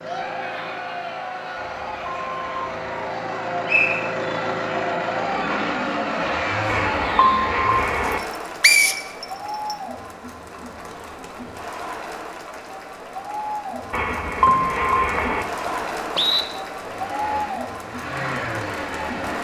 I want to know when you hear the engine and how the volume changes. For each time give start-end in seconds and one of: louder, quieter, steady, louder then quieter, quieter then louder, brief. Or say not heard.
0.0-8.1 louder
16.8-19.3 brief.